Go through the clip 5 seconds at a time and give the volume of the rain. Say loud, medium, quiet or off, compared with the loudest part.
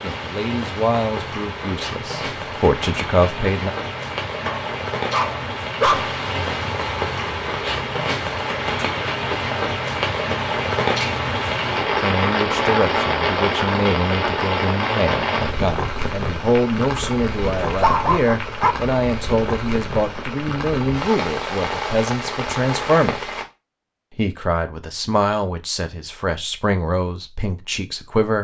medium, loud, loud, medium, medium, off.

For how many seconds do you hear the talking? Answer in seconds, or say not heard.
19 s.